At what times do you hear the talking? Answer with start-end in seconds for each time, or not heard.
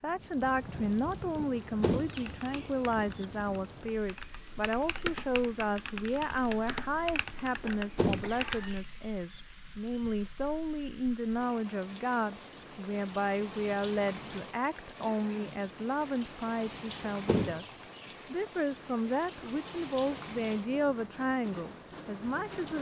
0.0-22.7.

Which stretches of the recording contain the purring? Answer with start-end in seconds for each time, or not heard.
not heard.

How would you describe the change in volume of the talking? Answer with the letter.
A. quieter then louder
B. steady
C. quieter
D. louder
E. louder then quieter
B.